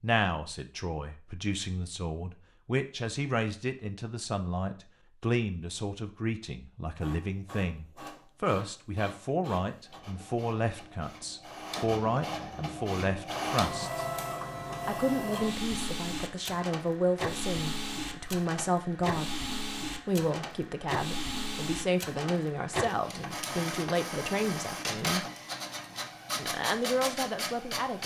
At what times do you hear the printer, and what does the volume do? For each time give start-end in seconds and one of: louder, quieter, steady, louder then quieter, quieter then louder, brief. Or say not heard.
7.0-28.0 louder.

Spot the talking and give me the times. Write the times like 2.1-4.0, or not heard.
0.0-14.1, 14.8-19.3, 20.1-25.2, 26.4-28.0.